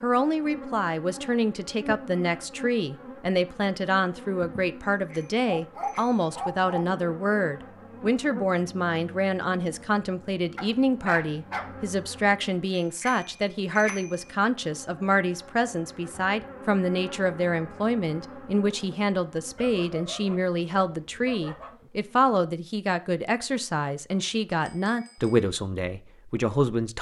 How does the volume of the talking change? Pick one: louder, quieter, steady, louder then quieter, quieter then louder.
steady.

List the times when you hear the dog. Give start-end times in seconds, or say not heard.
5.5-6.8, 10.6-11.9, 19.6-21.8.